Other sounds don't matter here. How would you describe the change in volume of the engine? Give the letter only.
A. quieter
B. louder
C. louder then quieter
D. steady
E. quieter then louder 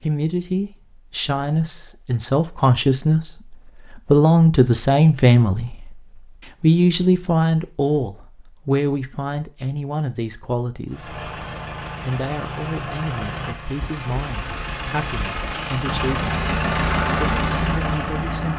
B.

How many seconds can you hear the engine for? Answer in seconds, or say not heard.
8 s.